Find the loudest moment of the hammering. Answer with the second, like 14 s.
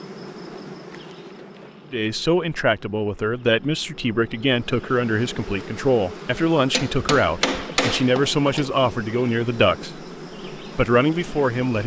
8 s.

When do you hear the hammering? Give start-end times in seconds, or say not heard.
6.3-8.7.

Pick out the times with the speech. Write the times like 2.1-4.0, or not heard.
1.9-11.8.